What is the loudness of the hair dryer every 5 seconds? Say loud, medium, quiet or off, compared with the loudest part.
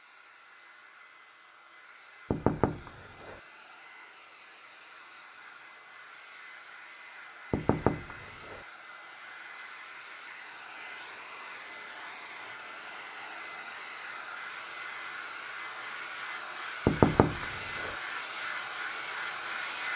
quiet, medium, medium, loud.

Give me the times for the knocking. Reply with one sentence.
The knocking can be heard from 2.3 to 3.4 s, from 7.5 to 8.6 s and from 16.9 to 17.9 s.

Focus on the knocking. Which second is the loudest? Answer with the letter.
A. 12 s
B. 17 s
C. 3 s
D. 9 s
B.